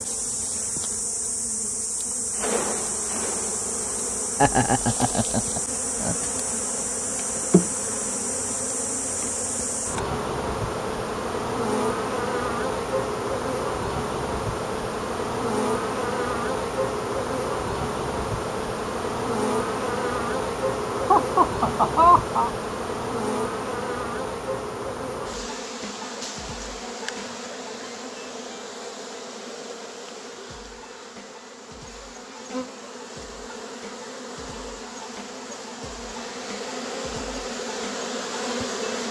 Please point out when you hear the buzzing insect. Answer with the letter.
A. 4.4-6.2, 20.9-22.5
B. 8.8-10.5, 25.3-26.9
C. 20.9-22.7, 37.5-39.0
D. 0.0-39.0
D.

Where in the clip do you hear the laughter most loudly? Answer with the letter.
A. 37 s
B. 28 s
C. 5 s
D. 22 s
D.